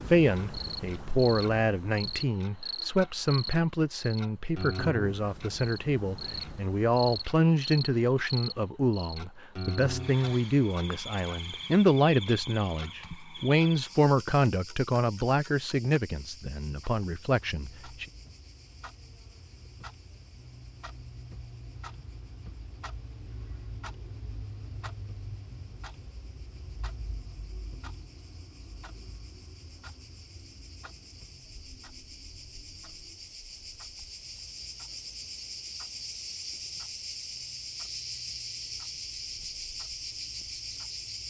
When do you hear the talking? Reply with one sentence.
The talking can be heard from 0.1 to 18.1 s.